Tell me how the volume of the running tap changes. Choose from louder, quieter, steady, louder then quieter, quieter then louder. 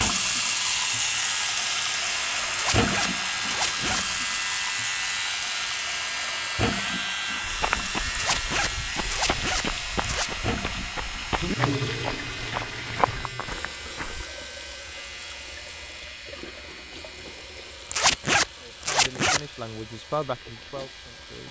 quieter.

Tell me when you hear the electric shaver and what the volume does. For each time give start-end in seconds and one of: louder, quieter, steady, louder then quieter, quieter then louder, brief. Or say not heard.
0.0-21.4 quieter.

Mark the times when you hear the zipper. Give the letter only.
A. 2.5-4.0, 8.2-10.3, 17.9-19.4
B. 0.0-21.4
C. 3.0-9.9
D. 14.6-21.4
A.